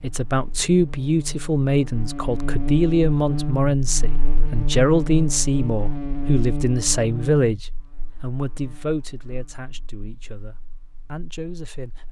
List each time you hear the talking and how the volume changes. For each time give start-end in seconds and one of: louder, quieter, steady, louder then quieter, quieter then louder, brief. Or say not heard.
0.0-12.0 quieter.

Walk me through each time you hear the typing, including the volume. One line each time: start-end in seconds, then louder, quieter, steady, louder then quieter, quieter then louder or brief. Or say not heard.
not heard.